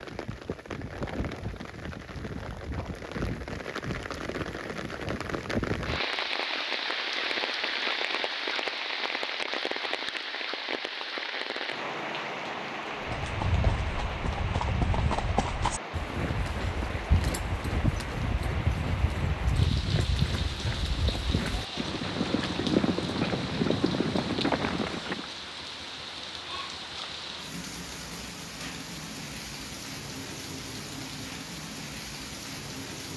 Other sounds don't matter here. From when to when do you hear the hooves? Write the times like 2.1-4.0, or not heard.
13.0-25.2.